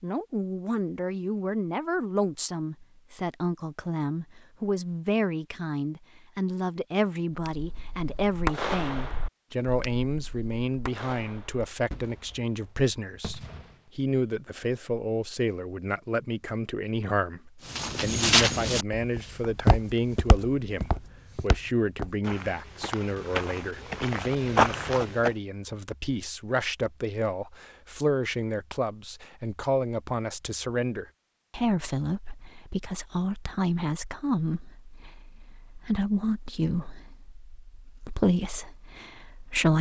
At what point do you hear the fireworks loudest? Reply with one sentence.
The loudest moment of the fireworks is at 9 seconds.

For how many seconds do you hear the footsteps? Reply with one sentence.
The footsteps can be heard for 8 seconds in total.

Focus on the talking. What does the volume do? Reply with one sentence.
The volume of the talking stays about the same.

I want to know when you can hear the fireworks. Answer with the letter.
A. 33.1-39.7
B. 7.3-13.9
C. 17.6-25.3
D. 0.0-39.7
B.